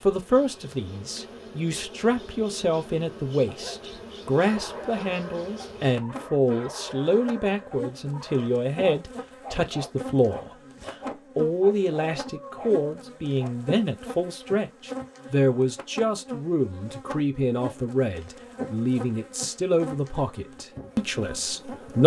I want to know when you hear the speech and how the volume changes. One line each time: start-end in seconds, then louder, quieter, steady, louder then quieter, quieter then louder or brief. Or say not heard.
0.0-22.0 steady.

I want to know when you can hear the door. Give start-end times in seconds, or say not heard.
not heard.